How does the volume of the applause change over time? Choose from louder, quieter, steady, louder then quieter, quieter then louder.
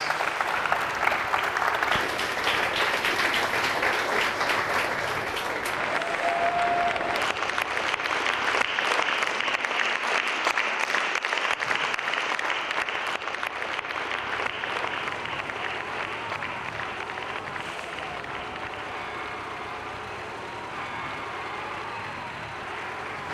quieter.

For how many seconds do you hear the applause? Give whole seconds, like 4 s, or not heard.
23 s.